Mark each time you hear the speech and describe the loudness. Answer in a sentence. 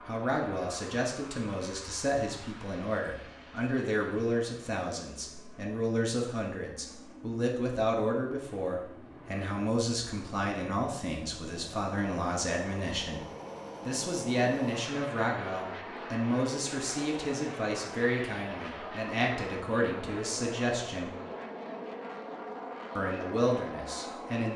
You can hear the speech from 0.1 to 13.2 s, at a steady volume; from 13.8 to 21.1 s, at a steady volume; and briefly from 22.9 to 24.5 s.